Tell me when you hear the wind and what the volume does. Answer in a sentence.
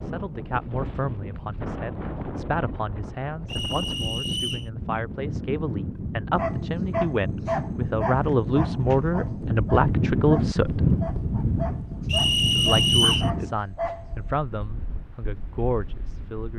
You can hear the wind from 0.0 to 16.5 s, getting louder then quieter.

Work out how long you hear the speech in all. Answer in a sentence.
You can hear the speech for 15 seconds altogether.